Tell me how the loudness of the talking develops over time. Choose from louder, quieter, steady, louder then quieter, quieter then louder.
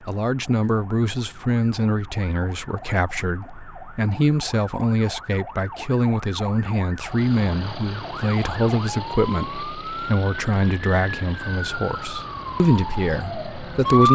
steady.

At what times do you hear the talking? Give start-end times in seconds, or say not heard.
0.1-14.1.